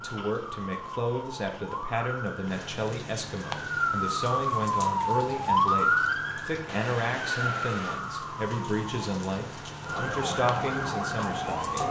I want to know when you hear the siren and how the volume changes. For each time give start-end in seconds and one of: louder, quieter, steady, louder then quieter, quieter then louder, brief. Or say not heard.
0.0-11.8 louder then quieter.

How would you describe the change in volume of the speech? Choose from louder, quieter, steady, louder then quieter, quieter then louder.
steady.